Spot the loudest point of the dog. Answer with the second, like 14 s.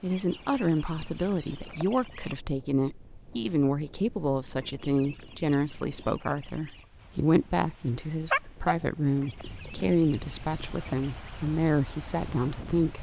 8 s.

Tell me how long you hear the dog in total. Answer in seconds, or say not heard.
3 s.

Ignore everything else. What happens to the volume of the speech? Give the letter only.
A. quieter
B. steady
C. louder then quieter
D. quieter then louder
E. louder
B.